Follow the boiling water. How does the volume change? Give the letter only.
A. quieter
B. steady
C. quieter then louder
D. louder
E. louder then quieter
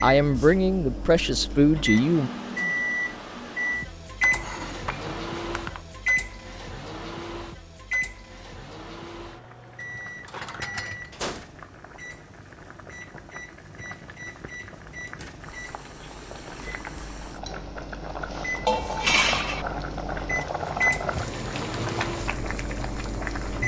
D.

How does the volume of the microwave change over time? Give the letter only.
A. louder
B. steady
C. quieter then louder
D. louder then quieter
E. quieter
C.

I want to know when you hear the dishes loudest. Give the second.
19 s.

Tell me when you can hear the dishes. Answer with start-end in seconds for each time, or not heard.
4.2-5.8, 10.4-11.2, 18.6-19.6.